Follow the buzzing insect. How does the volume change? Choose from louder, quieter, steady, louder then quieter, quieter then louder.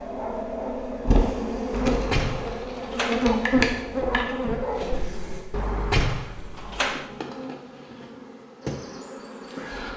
quieter.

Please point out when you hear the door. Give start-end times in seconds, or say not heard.
1.7-3.2, 5.5-7.0.